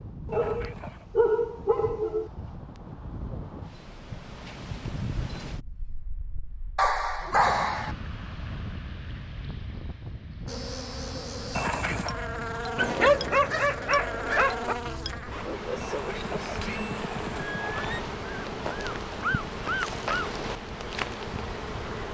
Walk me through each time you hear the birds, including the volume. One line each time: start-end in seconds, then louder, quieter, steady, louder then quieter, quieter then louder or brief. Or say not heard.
not heard.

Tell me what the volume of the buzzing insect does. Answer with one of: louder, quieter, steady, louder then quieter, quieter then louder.
steady.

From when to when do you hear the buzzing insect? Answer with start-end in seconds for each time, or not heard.
10.4-22.0.